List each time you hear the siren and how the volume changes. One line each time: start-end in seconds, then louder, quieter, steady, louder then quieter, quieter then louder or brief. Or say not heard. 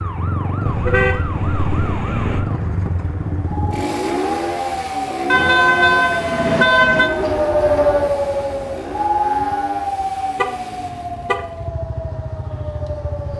0.0-13.3 louder then quieter.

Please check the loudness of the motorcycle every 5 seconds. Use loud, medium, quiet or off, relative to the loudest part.
loud, loud, medium.